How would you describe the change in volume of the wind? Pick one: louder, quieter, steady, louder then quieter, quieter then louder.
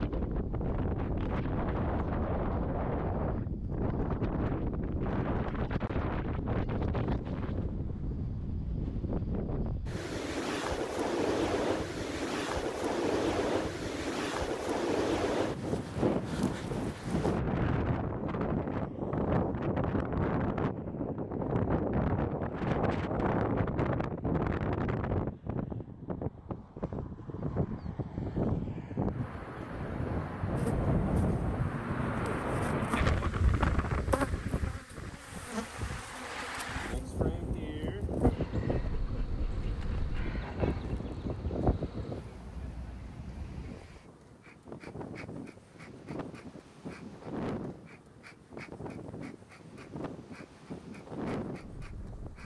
quieter.